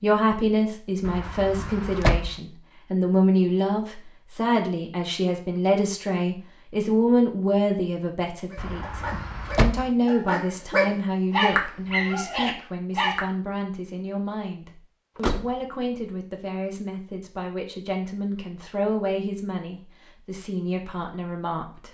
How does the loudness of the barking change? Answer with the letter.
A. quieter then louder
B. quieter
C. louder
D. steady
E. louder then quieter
E.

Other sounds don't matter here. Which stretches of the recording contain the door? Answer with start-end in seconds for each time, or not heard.
1.1-2.4, 8.6-9.9, 15.2-15.6.